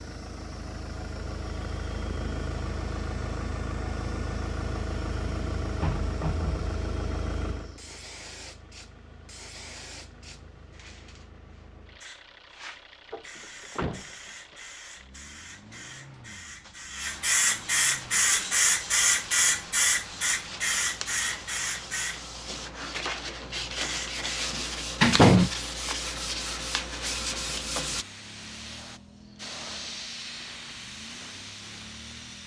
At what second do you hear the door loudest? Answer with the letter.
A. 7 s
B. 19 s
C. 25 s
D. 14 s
C.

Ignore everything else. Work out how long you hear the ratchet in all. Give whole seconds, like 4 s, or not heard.
not heard.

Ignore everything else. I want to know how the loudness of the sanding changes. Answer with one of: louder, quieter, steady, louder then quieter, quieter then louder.
louder.